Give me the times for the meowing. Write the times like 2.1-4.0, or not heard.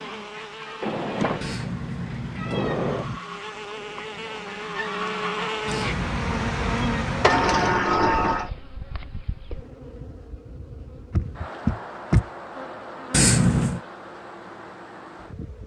1.4-3.2, 5.7-7.8, 13.1-13.8.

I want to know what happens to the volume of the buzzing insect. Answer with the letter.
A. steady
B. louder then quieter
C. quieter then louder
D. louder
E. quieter
B.